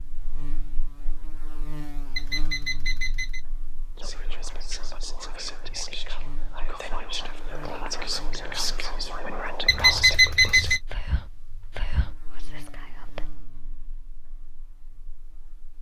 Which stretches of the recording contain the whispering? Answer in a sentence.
You can hear the whispering from 4.0 to 13.5 s.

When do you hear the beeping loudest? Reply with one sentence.
The loudest moment of the beeping is at 10 seconds.